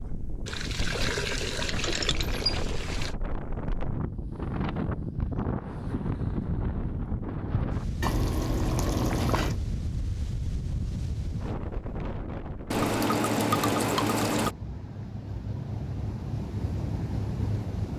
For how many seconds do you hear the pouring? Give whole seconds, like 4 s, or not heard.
6 s.